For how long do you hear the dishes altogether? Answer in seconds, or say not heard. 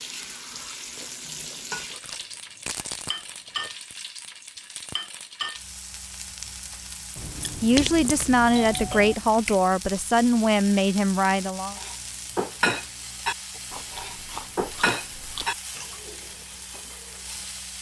6 s.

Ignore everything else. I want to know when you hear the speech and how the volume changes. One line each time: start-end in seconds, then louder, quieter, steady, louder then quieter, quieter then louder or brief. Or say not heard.
7.6-11.8 steady.